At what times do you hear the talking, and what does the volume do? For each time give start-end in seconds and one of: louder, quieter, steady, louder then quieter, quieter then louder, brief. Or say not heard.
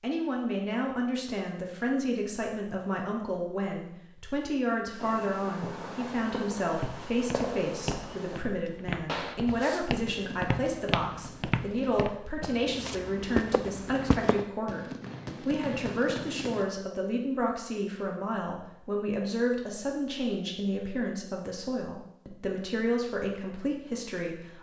0.0-24.5 steady.